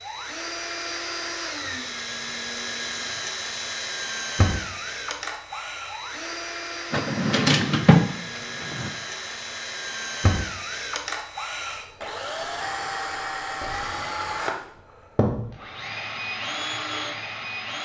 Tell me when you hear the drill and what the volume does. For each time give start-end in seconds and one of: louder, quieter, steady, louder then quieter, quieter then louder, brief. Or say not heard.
0.0-17.8 steady.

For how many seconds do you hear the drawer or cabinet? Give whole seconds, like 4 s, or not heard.
2 s.